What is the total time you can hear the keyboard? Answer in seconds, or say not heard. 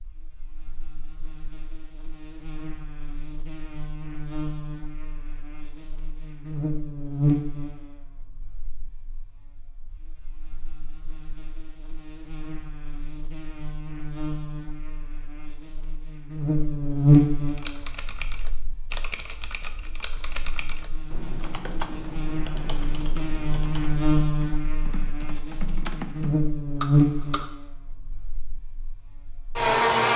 10 s.